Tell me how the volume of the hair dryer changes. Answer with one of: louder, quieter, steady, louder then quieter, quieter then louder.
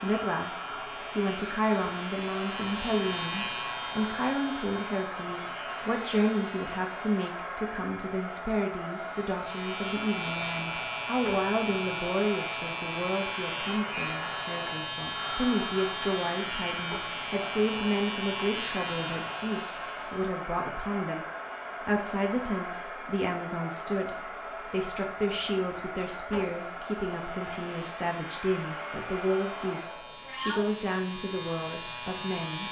steady.